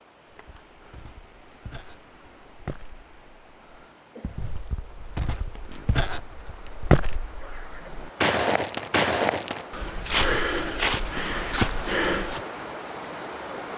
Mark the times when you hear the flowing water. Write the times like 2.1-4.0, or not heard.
0.0-13.7.